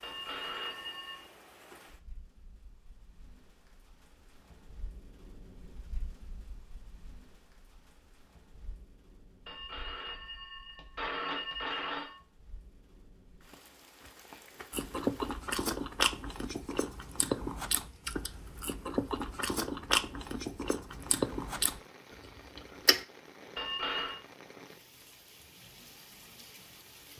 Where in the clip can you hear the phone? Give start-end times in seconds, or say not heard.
0.0-1.2, 9.4-12.2, 23.6-24.2.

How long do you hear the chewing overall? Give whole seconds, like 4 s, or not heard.
8 s.